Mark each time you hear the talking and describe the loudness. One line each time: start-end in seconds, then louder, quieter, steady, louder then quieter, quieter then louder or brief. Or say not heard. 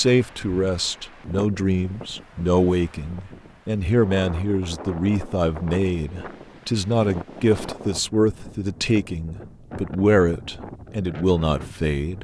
0.0-12.1 steady.